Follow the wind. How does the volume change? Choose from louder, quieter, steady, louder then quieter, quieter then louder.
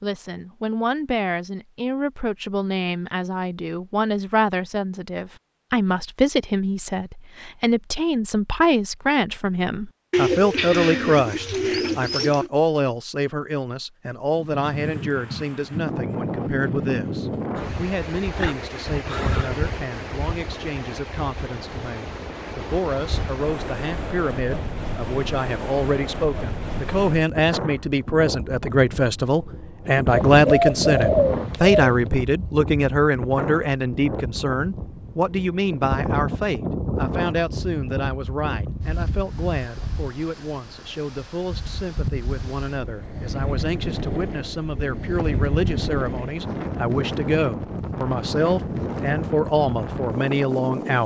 steady.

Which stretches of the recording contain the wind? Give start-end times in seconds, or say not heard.
14.3-51.0.